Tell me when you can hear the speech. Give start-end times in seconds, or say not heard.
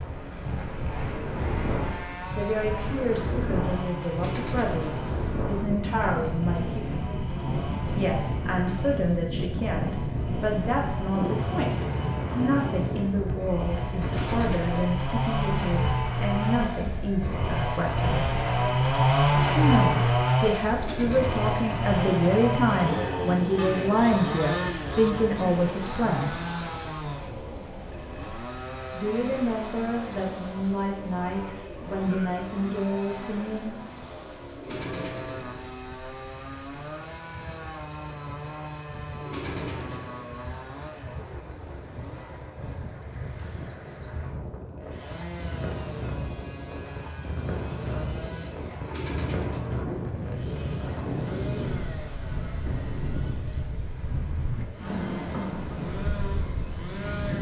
2.3-7.1, 8.0-18.3, 19.6-26.4, 28.9-33.8.